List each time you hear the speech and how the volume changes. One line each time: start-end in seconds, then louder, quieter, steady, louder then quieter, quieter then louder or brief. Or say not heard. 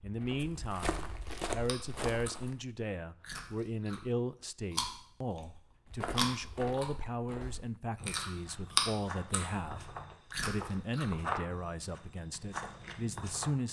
0.0-13.6 steady.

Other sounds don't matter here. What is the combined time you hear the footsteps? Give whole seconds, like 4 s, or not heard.
10 s.